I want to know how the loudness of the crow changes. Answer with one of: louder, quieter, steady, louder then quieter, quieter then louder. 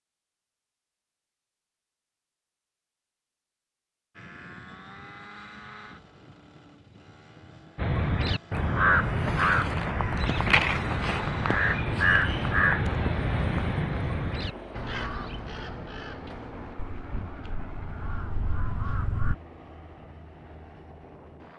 quieter.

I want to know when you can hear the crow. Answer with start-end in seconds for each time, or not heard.
7.8-19.4.